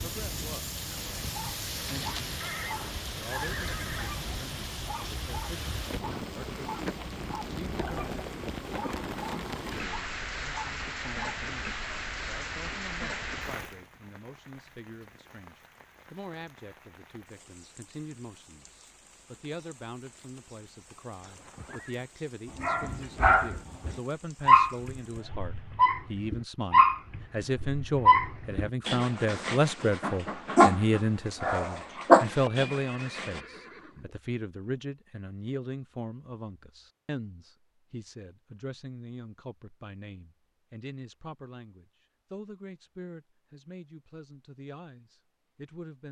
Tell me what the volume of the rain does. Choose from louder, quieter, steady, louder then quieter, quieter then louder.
quieter.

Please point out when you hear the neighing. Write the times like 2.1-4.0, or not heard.
2.4-4.2, 21.2-22.1, 32.6-34.1.